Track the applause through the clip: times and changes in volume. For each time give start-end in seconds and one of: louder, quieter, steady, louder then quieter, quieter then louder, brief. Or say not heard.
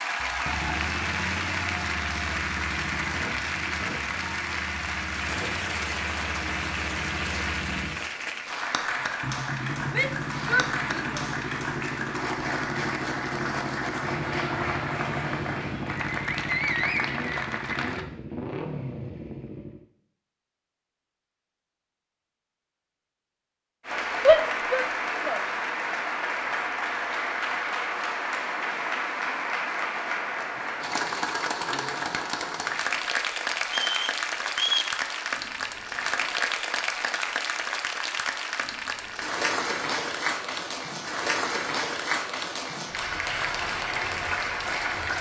0.0-18.1 steady
23.9-45.1 steady.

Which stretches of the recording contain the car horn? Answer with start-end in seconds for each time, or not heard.
not heard.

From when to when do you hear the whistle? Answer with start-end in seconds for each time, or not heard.
33.6-34.9.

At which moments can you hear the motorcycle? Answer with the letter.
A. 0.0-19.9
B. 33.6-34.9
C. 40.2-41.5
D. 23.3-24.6
A.